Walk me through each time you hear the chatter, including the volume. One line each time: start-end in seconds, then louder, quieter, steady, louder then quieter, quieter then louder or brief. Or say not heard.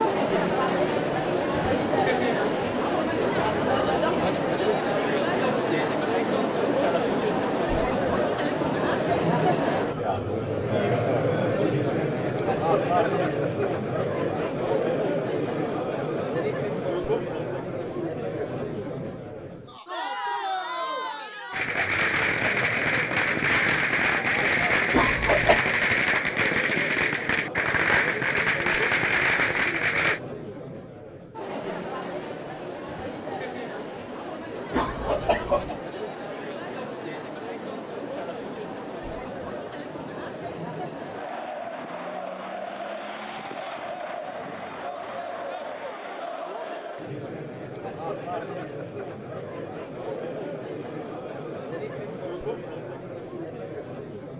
0.0-54.3 quieter.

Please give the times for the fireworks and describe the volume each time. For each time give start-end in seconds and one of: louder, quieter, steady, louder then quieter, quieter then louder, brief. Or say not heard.
21.5-30.2 steady.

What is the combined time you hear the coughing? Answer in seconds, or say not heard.
2 s.